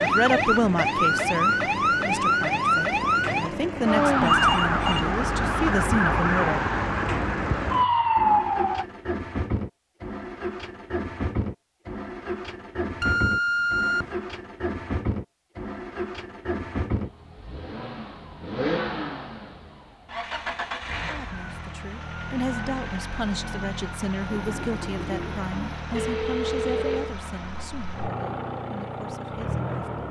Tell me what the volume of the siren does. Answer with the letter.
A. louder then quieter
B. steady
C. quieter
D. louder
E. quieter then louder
B.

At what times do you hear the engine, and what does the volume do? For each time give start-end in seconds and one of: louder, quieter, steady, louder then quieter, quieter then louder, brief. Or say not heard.
0.0-30.0 steady.